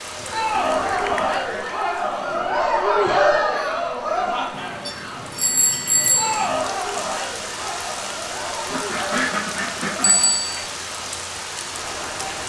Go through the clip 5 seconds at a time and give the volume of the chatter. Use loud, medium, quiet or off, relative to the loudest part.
loud, medium, quiet.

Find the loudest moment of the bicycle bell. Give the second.
6 s.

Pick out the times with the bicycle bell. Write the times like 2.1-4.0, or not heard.
0.5-1.4, 5.3-6.5, 10.0-10.5.